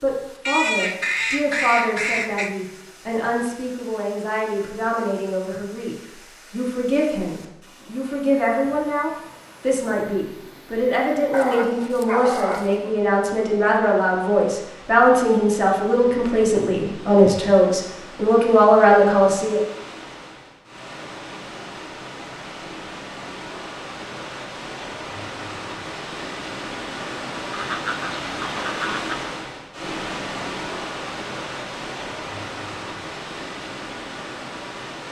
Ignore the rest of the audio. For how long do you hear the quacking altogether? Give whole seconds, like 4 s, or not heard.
4 s.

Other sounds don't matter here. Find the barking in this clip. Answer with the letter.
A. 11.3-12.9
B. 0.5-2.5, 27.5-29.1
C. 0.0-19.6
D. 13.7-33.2
A.